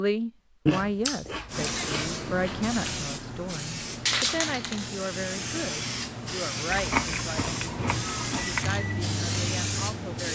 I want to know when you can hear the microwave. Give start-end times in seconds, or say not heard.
7.3-10.3.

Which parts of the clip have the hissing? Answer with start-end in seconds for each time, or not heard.
1.4-10.3.